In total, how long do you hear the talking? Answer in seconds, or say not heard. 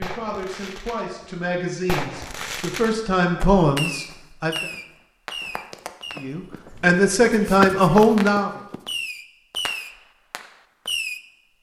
7 s.